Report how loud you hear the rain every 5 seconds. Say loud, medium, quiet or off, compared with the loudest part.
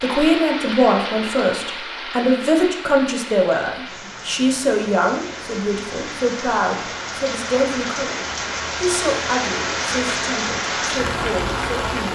medium, loud, loud.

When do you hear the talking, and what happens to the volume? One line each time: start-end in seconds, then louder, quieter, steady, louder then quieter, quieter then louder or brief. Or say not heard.
0.0-12.1 quieter.